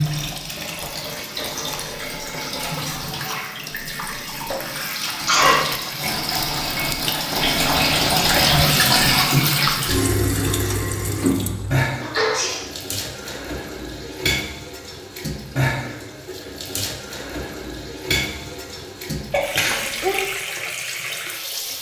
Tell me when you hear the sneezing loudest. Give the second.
5 s.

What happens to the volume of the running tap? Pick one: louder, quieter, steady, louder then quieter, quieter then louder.
louder then quieter.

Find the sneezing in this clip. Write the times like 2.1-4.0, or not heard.
4.8-5.7, 12.0-12.7, 19.3-20.2.